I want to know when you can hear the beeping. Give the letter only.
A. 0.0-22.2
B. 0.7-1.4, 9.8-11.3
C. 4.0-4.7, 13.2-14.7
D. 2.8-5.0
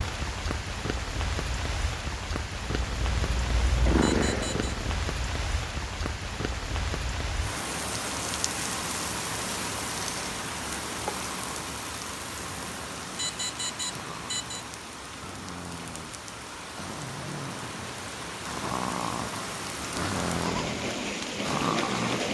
C.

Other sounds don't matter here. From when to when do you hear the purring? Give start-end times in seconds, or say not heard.
2.8-5.0.